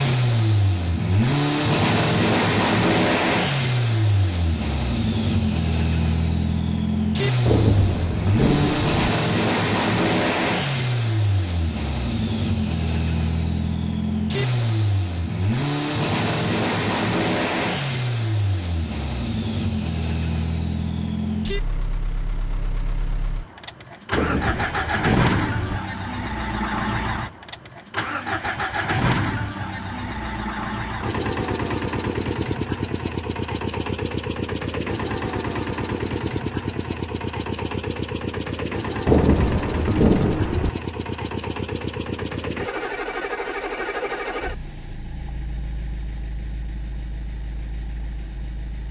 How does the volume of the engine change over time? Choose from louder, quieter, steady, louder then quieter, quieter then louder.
quieter.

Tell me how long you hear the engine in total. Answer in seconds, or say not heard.
49 s.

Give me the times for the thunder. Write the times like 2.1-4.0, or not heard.
7.5-8.9, 24.1-25.8, 39.0-40.7.